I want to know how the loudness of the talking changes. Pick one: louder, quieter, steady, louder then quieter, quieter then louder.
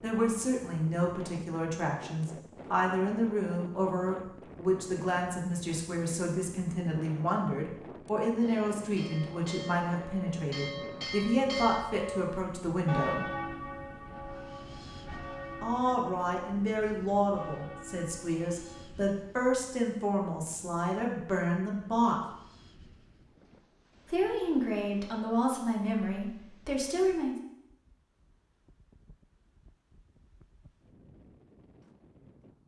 steady.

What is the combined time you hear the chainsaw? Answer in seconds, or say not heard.
not heard.